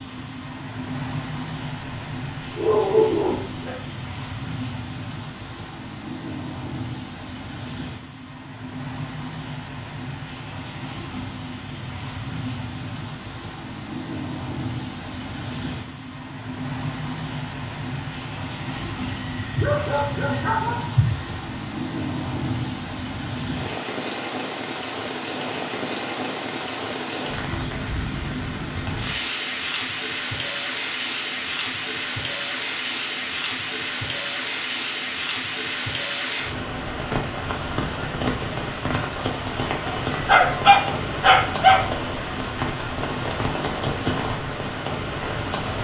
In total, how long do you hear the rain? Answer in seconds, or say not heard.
46 s.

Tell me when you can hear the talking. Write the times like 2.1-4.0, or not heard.
not heard.